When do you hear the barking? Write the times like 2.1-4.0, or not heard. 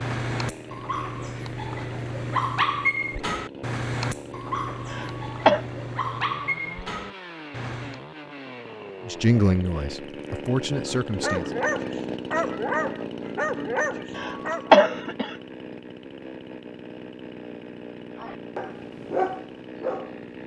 0.0-8.0, 10.9-14.7, 18.1-20.2.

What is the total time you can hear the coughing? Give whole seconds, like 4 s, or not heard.
2 s.